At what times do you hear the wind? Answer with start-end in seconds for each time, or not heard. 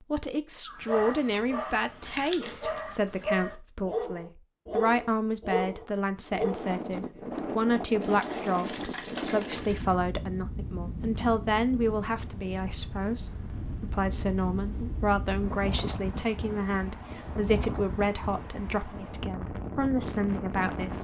6.2-21.0.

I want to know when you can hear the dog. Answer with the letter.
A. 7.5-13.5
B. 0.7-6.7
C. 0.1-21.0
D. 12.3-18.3
B.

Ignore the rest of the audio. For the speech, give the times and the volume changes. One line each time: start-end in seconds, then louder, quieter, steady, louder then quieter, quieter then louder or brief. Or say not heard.
0.1-21.0 steady.